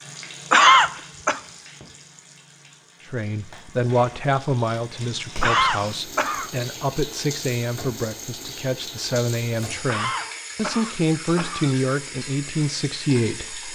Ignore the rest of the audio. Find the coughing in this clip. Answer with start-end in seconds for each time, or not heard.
0.5-1.4, 5.4-6.5, 9.8-11.8.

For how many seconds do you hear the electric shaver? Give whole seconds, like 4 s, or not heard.
not heard.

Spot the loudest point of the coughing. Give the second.
1 s.